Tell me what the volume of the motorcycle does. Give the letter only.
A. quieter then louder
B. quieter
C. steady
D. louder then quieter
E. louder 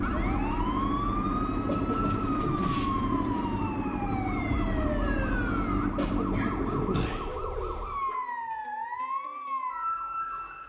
C.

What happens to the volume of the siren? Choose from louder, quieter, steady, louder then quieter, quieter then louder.
steady.